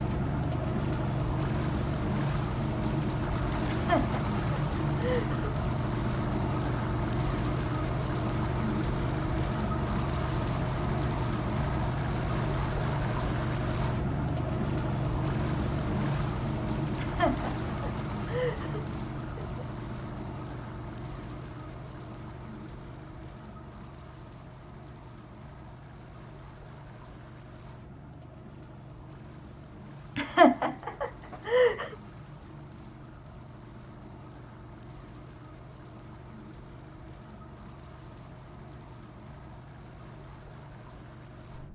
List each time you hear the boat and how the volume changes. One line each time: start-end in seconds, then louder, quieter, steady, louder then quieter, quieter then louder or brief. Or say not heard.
0.0-41.7 quieter.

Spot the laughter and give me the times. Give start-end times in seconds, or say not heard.
3.7-5.5, 16.9-19.6, 30.1-31.9.